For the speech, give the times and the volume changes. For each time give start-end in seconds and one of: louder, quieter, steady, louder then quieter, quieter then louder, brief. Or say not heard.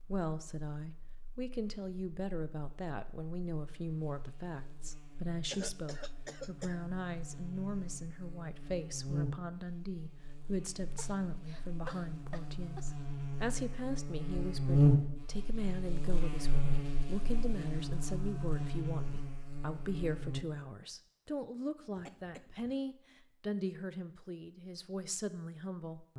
0.1-26.1 steady.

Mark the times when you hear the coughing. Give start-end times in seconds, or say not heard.
5.5-6.8, 10.9-12.9, 21.9-22.8.